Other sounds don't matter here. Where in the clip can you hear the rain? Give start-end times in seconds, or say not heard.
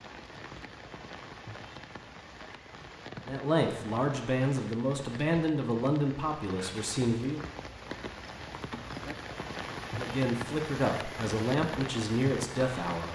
0.0-13.1.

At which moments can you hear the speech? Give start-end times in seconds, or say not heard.
3.2-7.5, 9.9-13.1.